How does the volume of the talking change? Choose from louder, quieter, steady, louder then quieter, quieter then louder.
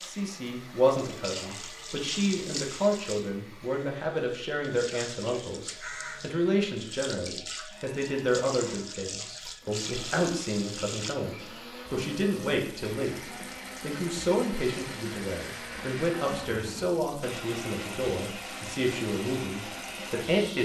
steady.